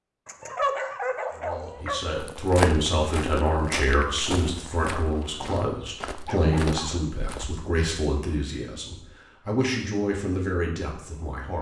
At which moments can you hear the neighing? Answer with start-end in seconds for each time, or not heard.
not heard.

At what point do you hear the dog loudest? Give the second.
1 s.